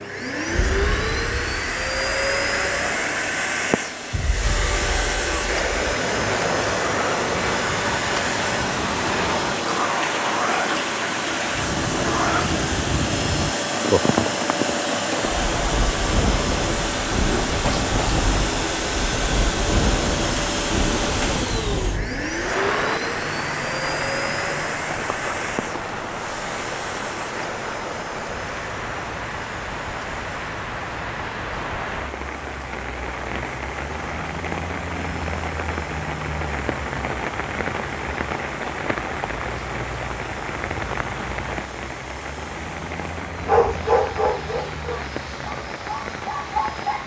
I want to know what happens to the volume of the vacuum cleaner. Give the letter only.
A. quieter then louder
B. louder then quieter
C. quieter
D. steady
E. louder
C.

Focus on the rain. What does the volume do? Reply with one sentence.
The loudness of the rain stays about the same.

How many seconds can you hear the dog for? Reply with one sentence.
You can hear the dog for 4 seconds altogether.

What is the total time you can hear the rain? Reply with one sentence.
The rain can be heard for 47 seconds in total.